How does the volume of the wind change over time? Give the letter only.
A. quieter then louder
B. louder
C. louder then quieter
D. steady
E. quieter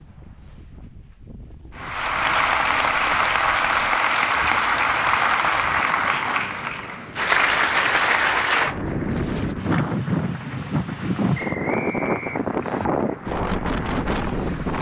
B.